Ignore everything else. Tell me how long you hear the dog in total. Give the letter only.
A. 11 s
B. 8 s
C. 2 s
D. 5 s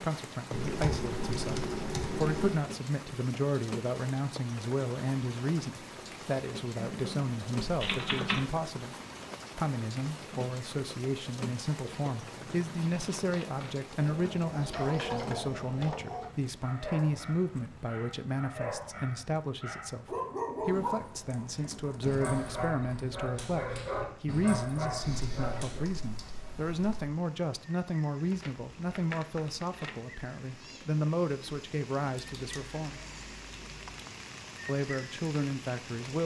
A.